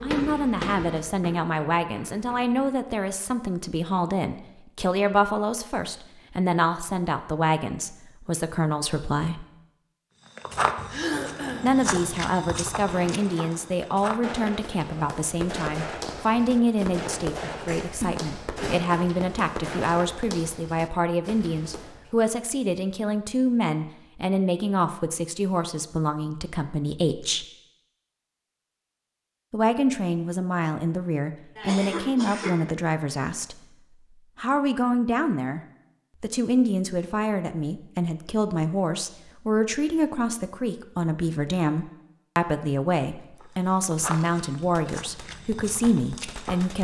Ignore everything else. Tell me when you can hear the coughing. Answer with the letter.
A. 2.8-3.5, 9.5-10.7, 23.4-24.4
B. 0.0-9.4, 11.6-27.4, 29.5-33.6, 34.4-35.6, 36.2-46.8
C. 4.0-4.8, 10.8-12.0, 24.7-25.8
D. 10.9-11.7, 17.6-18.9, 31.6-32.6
D.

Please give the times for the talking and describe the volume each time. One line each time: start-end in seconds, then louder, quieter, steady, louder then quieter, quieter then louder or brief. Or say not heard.
0.0-9.4 steady
11.6-27.4 steady
29.5-33.6 steady
34.4-35.6 brief
36.2-46.8 steady.